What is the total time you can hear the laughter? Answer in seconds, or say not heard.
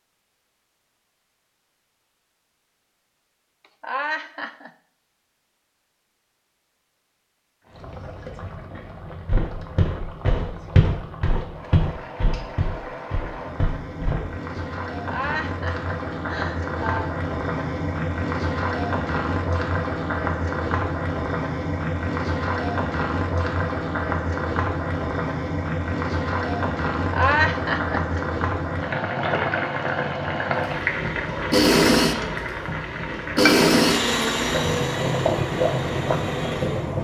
4 s.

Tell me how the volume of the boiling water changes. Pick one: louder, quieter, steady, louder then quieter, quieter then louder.
louder.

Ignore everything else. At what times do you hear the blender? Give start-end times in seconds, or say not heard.
30.6-37.0.